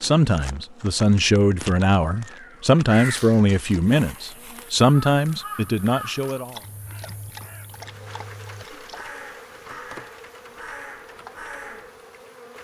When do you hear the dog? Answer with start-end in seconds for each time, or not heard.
6.2-9.1.